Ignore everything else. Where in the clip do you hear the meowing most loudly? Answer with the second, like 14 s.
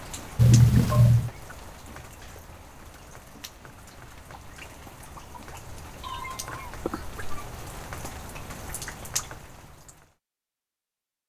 1 s.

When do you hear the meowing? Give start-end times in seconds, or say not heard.
0.3-1.3, 6.0-7.2.